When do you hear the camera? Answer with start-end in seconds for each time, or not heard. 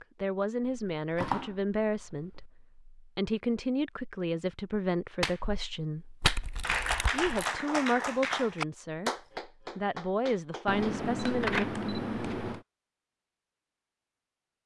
0.6-2.5, 6.2-7.5, 10.7-12.7.